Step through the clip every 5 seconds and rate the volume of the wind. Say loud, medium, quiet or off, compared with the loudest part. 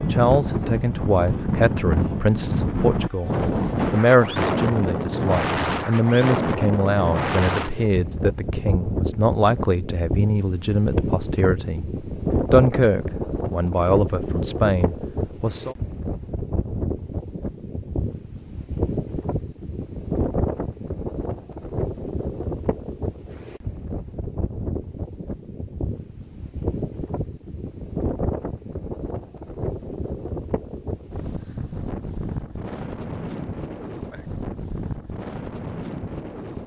loud, loud, loud, medium, medium, medium, medium, medium.